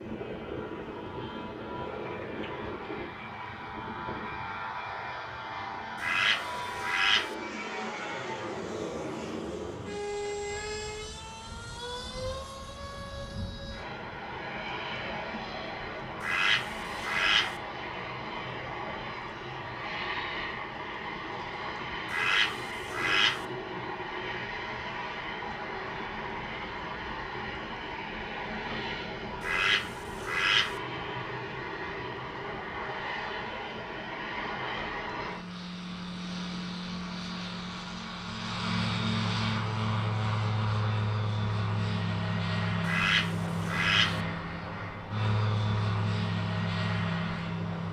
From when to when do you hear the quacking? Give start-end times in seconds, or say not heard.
6.0-7.3, 16.2-17.6, 22.1-23.4, 29.4-30.8, 42.9-44.2.